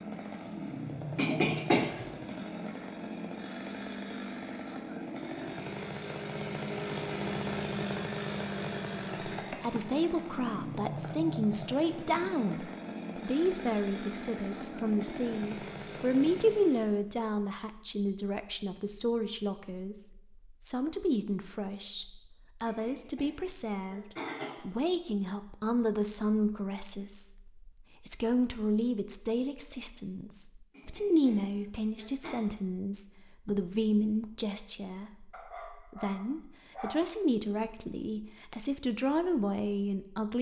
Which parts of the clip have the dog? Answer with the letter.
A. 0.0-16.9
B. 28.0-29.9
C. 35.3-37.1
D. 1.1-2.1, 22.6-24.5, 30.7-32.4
C.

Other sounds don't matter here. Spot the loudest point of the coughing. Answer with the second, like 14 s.
2 s.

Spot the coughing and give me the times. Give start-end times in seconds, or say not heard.
1.1-2.1, 22.6-24.5, 30.7-32.4.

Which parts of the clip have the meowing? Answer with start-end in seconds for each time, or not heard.
not heard.